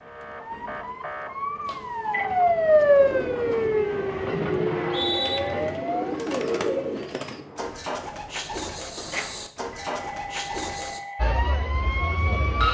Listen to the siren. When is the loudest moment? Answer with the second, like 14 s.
3 s.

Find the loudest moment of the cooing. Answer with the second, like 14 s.
7 s.